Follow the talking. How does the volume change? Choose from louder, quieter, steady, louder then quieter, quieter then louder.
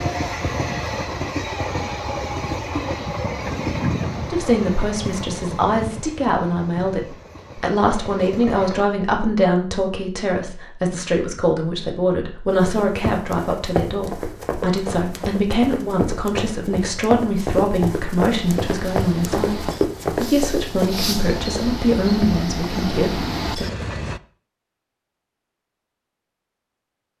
steady.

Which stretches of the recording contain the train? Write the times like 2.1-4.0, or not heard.
0.0-8.8, 18.3-24.2.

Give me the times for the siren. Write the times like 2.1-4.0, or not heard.
not heard.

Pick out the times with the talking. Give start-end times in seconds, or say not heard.
4.2-23.6.